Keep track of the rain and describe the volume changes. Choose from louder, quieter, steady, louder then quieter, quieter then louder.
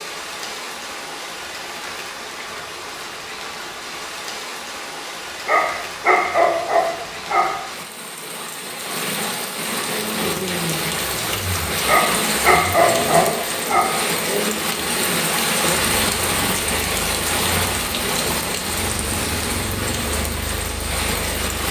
louder.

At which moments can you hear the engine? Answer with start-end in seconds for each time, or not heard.
9.8-21.6.